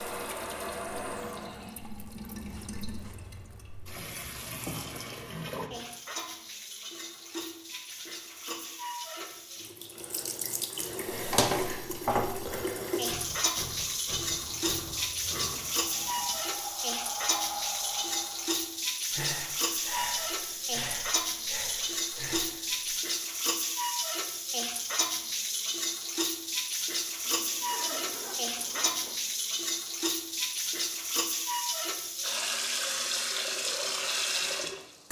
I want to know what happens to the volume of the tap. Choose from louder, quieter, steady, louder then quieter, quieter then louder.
louder.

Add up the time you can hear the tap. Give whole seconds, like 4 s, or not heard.
35 s.